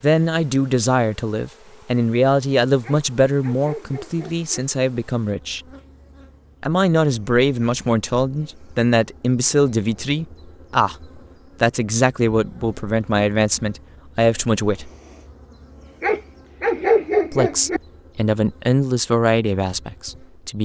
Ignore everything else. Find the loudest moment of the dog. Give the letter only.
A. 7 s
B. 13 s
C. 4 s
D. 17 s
D.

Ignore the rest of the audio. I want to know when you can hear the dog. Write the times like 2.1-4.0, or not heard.
2.8-4.5, 16.0-17.8.